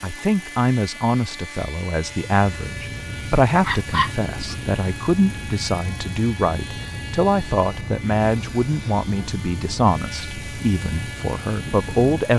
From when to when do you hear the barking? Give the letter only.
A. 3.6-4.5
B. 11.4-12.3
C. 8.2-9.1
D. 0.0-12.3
A.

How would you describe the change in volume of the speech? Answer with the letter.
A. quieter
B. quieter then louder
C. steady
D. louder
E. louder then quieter
C.